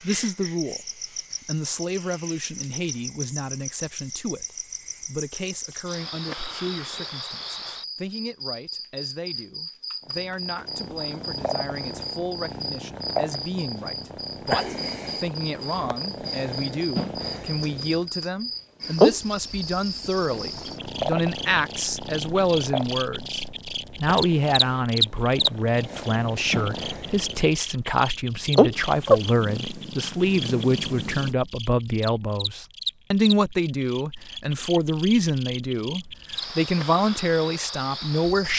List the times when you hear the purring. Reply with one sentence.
The purring can be heard from 10.1 to 18.1 s, from 18.9 to 27.6 s and from 28.5 to 31.4 s.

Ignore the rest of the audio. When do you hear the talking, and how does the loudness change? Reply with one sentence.
The talking can be heard from 0.0 to 38.5 s, getting louder.